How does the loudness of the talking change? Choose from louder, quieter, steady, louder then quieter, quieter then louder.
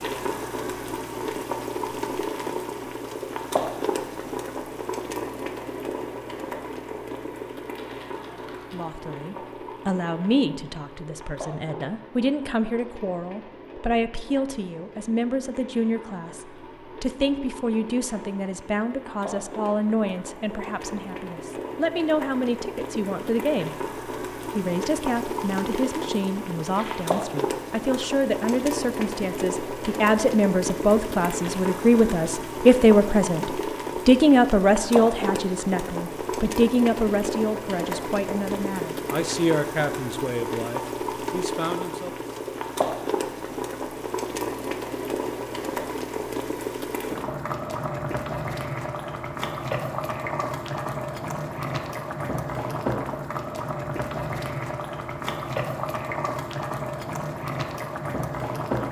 louder then quieter.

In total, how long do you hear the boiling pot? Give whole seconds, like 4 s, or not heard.
59 s.